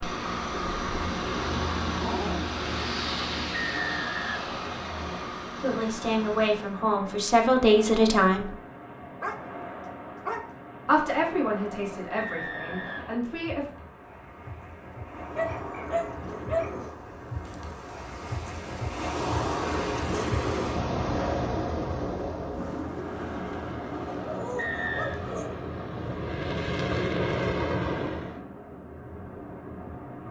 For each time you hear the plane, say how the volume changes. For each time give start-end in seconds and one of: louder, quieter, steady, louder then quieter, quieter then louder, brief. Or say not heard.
0.0-6.8 quieter
22.9-28.4 louder.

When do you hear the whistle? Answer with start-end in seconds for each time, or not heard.
3.5-5.3, 12.2-13.2, 24.6-25.2.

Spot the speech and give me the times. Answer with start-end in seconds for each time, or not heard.
5.5-8.5, 10.8-13.7.